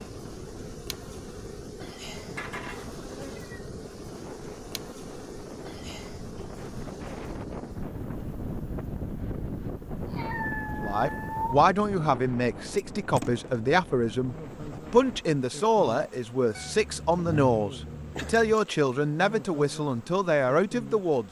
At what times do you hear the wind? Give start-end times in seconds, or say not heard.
0.0-15.2.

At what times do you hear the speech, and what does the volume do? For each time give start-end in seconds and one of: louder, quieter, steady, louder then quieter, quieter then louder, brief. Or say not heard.
10.8-21.2 steady.